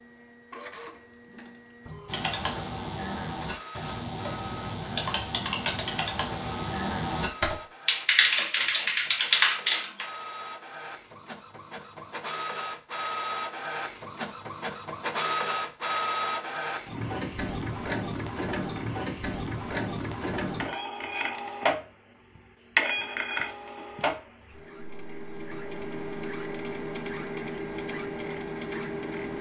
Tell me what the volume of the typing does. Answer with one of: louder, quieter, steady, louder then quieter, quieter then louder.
louder.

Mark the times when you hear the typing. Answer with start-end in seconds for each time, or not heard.
2.0-10.1.